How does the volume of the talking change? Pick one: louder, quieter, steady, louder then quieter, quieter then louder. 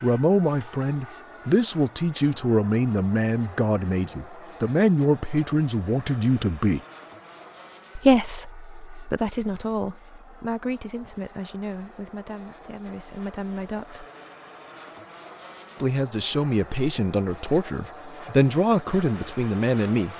quieter then louder.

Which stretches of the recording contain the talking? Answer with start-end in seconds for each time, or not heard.
0.0-6.8, 8.0-14.1, 15.8-20.1.